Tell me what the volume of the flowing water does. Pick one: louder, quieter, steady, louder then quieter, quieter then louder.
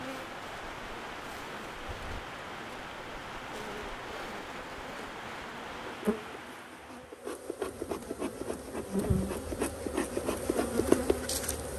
steady.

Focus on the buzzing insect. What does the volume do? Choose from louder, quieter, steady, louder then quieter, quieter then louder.
louder.